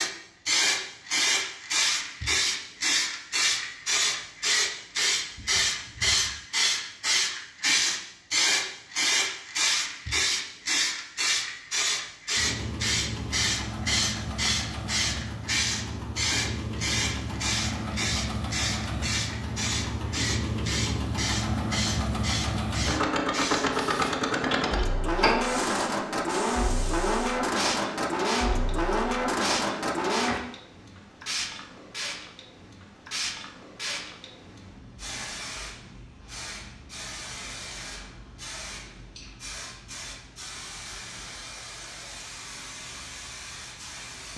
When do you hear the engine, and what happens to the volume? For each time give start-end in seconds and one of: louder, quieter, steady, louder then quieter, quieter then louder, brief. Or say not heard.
12.3-30.4 louder.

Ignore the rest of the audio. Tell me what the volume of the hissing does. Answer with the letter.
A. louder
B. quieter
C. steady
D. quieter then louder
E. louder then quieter
B.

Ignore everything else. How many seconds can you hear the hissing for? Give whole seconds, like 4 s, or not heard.
44 s.